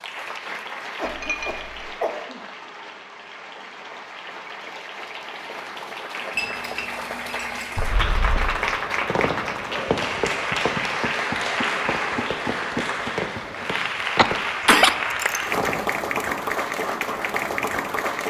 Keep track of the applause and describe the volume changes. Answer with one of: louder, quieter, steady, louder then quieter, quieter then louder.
louder.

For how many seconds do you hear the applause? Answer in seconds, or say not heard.
18 s.